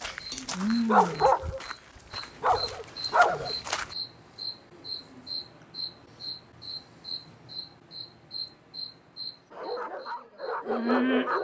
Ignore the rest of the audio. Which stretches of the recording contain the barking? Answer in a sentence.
You can hear the barking from 0.0 to 4.0 s and from 9.5 to 11.3 s.